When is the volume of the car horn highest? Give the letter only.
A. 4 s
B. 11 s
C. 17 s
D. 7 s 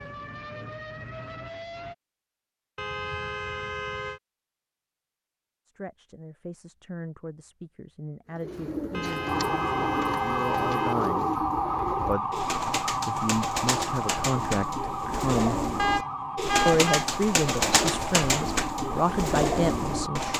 C.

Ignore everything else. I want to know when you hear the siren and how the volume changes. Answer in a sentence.
The siren can be heard briefly from 0.0 to 1.9 s; and from 9.2 to 20.3 s, getting quieter.